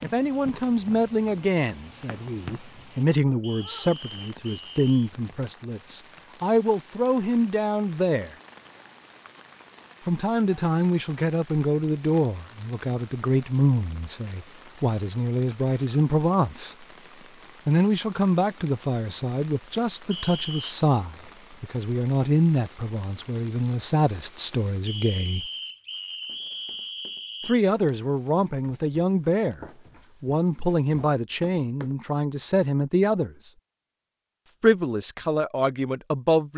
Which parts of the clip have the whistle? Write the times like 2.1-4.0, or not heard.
3.4-5.1, 20.1-20.8, 24.9-27.6.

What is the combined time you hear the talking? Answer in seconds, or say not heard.
31 s.